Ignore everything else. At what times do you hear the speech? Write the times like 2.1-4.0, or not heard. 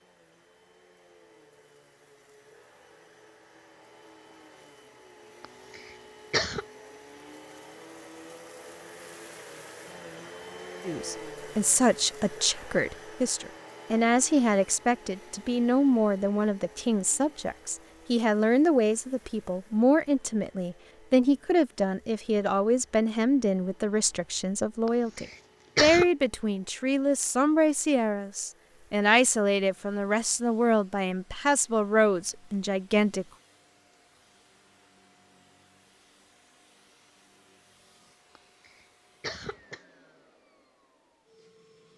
10.8-33.2.